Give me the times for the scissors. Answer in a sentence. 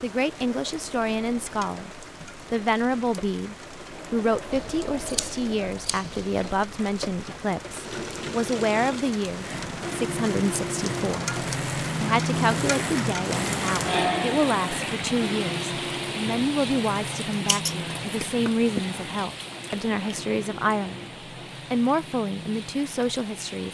You can hear the scissors from 4.5 to 6.5 s and from 17.3 to 18.8 s.